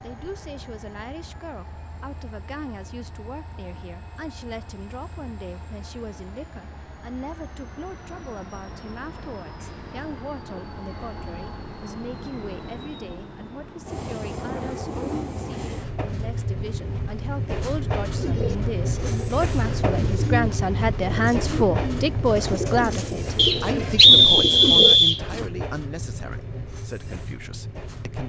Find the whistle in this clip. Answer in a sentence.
The whistle can be heard from 23.4 to 25.2 s.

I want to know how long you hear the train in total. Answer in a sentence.
You can hear the train for 28 seconds altogether.